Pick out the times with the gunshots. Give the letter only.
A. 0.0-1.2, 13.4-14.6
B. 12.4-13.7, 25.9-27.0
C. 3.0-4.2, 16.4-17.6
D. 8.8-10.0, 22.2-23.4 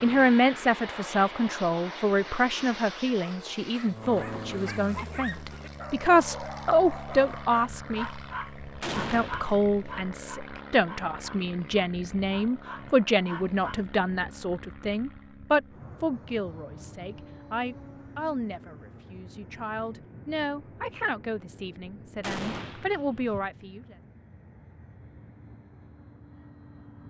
D.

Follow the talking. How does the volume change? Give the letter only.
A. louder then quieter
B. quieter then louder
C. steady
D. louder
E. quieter
E.